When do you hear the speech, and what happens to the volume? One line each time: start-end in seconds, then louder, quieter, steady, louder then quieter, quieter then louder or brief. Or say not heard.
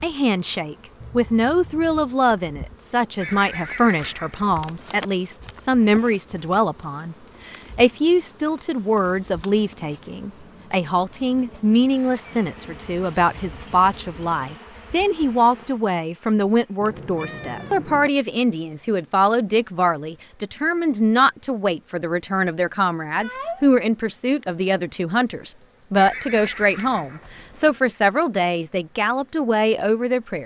0.0-30.4 steady.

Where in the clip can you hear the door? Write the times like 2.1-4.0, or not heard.
not heard.